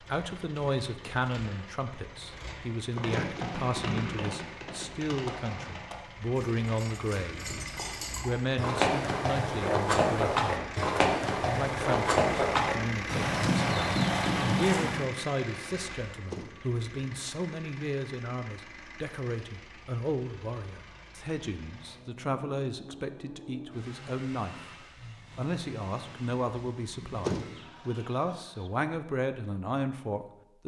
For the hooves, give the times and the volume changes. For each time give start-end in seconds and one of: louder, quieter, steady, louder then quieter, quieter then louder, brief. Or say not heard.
3.0-15.1 quieter then louder.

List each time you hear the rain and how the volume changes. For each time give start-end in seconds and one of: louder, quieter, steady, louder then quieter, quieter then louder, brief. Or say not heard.
not heard.